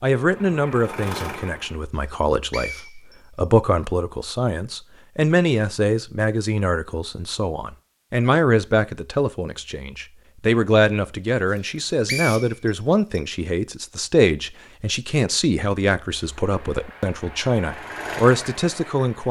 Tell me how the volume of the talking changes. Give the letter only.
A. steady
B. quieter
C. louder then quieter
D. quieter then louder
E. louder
A.